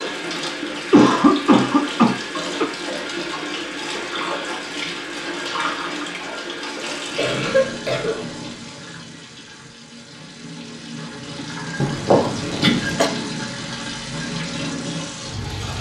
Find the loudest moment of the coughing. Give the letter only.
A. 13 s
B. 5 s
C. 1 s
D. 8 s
C.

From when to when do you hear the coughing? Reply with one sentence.
The coughing can be heard from 0.6 to 2.6 s, from 7.2 to 8.6 s and from 11.8 to 13.1 s.